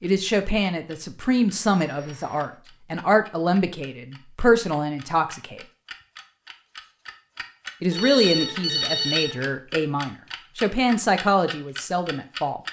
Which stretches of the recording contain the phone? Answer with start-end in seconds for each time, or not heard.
1.8-2.6, 7.9-9.4.